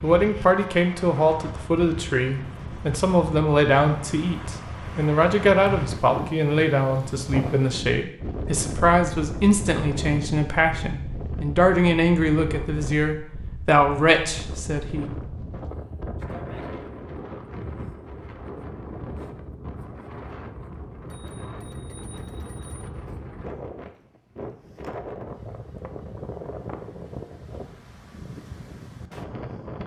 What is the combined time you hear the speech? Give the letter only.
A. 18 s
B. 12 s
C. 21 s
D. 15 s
D.